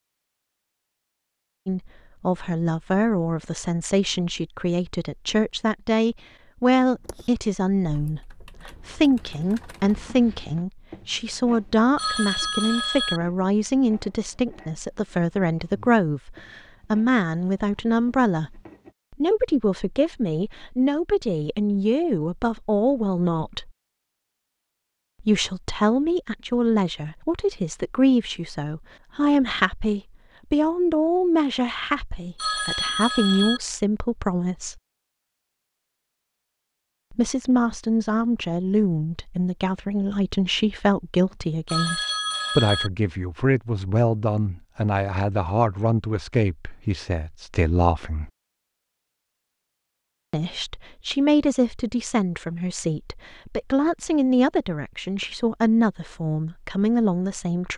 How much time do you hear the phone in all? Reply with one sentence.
You can hear the phone for 4 seconds altogether.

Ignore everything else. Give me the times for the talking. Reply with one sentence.
The talking can be heard from 1.6 to 23.7 s, from 25.2 to 34.8 s, from 37.1 to 48.3 s and from 50.3 to 57.7 s.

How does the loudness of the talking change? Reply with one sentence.
The volume of the talking stays about the same.